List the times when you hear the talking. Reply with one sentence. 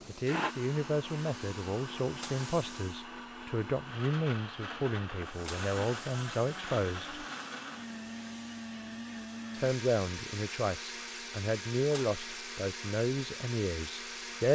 You can hear the talking from 0.1 to 7.2 s and from 9.5 to 14.5 s.